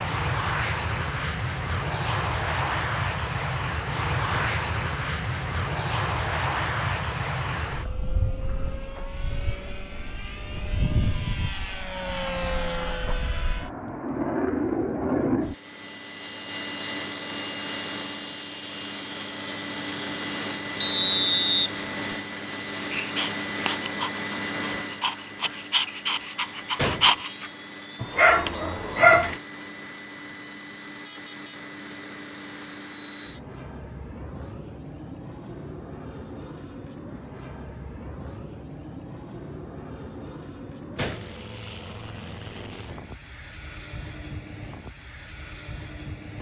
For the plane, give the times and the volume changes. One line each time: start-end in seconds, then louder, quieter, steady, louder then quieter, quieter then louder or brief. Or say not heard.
0.0-46.3 quieter.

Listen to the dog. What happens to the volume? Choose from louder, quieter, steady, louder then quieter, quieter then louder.
louder.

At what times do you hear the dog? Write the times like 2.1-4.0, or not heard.
22.8-29.4.